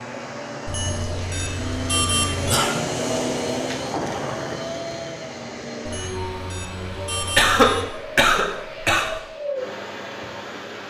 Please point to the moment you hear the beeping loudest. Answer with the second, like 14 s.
2 s.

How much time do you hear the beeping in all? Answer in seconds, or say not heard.
4 s.